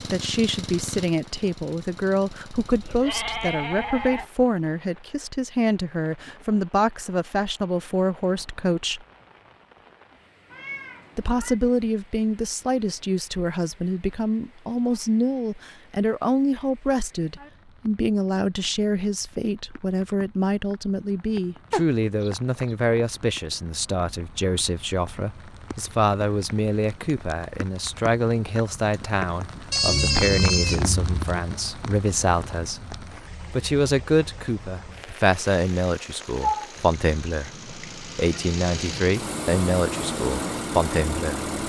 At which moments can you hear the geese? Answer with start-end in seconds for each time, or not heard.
not heard.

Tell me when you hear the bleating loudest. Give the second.
30 s.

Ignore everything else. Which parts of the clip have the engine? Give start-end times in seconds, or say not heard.
0.0-3.0, 35.3-41.6.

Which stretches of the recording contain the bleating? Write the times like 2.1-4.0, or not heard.
2.6-4.2, 29.7-31.4.